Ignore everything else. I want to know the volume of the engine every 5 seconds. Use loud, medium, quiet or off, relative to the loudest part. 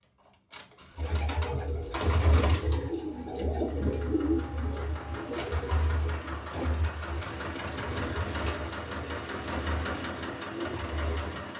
medium, loud, loud.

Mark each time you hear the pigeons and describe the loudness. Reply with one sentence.
You can hear the pigeons from 0.9 to 11.4 s, getting quieter.